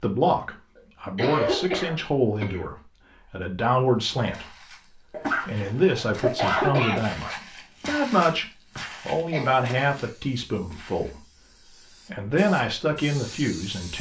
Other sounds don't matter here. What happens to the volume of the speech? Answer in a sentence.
The loudness of the speech stays about the same.